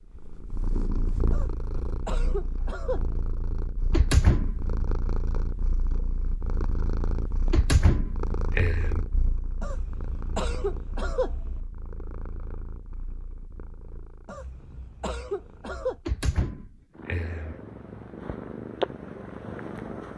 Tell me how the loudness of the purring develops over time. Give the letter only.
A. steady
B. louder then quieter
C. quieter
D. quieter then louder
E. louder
D.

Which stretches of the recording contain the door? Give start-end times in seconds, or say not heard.
3.9-4.6, 7.3-9.0, 16.1-17.6.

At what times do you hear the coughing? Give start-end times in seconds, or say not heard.
1.3-3.3, 9.6-11.6, 14.2-16.0.